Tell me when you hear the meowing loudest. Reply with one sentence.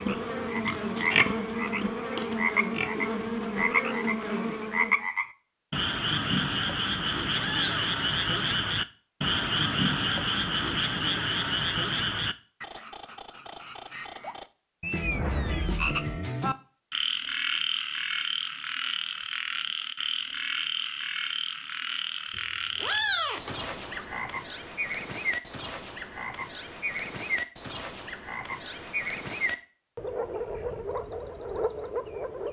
The volume of the meowing peaks at 23 seconds.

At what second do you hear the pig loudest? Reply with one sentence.
The loudest moment of the pig is at 1 second.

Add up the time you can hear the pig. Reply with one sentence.
You can hear the pig for 3 seconds altogether.